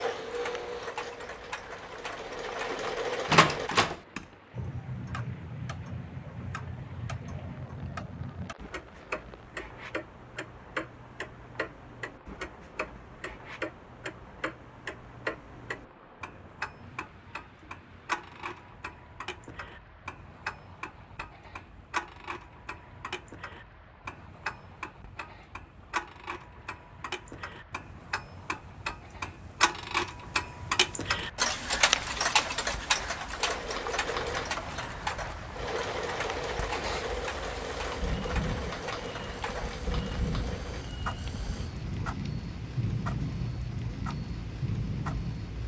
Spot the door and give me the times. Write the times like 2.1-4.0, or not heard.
3.2-4.0.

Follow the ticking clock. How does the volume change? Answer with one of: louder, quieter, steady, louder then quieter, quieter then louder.
louder then quieter.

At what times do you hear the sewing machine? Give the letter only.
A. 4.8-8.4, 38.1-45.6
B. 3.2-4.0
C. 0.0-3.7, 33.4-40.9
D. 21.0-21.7
C.